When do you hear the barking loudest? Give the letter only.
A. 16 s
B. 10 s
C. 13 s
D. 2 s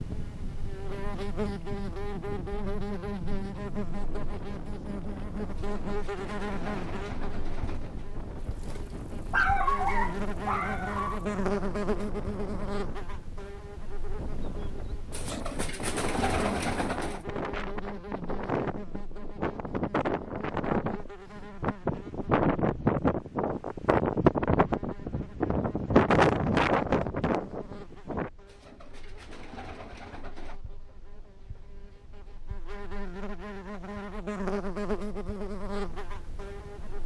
B.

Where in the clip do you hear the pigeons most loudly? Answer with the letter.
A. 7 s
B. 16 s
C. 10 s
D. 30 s
B.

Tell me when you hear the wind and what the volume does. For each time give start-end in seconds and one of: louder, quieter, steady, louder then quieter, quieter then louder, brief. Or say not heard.
0.0-28.3 louder.